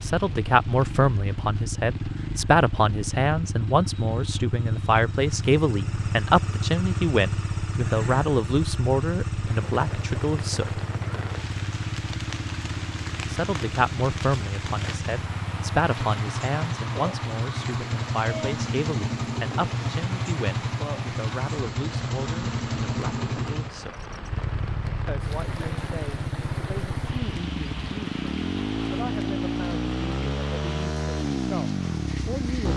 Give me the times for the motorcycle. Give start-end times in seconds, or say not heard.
0.0-32.7.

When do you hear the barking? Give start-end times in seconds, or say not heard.
not heard.